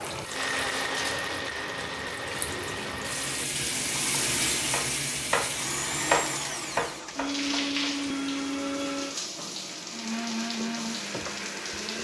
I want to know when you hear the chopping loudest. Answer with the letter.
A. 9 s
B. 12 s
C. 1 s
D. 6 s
D.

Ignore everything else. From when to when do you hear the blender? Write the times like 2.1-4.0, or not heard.
0.0-11.9.